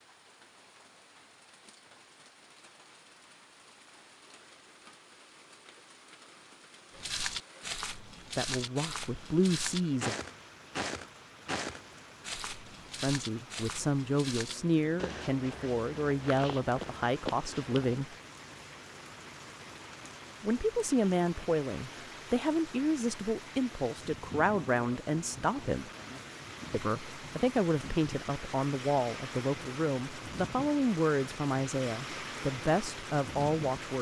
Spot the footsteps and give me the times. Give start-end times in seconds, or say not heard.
7.0-18.0.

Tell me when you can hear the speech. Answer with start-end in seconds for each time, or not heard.
8.3-10.2, 13.0-18.1, 20.4-25.9, 26.7-33.9.